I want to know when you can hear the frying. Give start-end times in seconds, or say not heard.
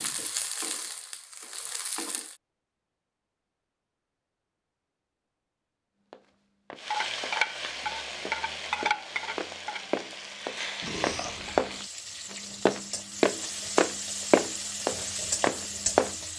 0.0-2.4, 6.8-16.3.